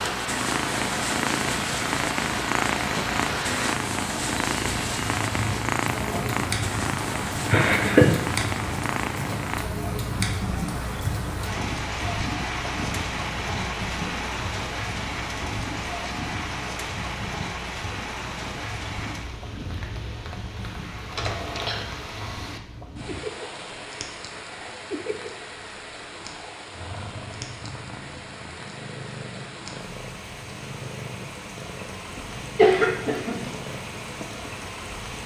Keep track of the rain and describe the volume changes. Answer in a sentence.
The loudness of the rain goes down.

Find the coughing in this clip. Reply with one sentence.
The coughing can be heard from 7.5 to 8.2 s, from 21.1 to 21.9 s and from 32.1 to 33.4 s.